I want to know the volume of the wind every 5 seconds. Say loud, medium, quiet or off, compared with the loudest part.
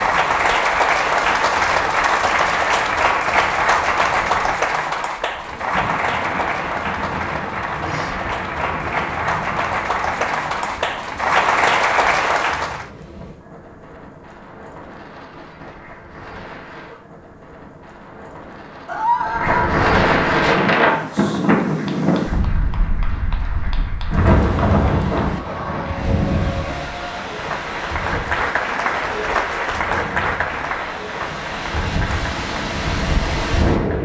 quiet, quiet, quiet, medium, loud, medium, medium.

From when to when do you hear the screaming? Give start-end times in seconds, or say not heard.
18.9-19.8.